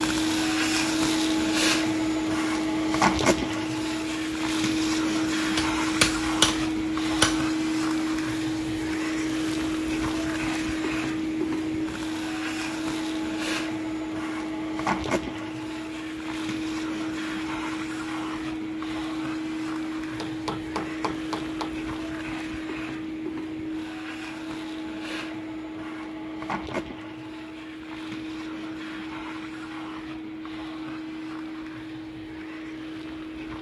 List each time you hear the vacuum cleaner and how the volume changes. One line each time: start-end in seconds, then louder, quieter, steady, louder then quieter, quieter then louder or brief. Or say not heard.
0.0-33.5 quieter.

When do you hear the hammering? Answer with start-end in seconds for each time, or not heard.
5.5-7.5, 20.2-21.8.